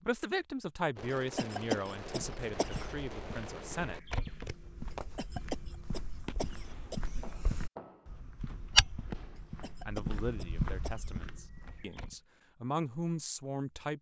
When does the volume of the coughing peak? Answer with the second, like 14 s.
2 s.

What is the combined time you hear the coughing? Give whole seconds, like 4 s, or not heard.
6 s.